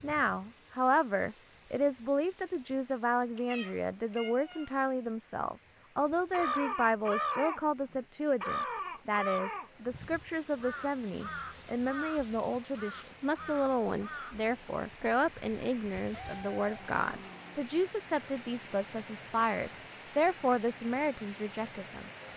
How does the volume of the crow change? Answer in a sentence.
The loudness of the crow goes down.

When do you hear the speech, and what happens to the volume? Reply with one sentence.
The speech can be heard from 0.0 to 22.1 s, at a steady volume.